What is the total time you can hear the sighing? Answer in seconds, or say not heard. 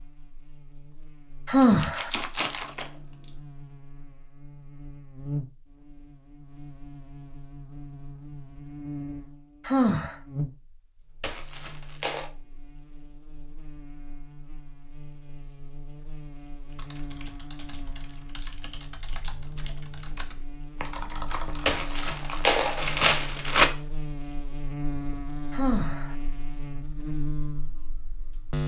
2 s.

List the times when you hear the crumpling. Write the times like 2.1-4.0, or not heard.
1.6-3.3, 11.2-12.3, 21.6-23.6.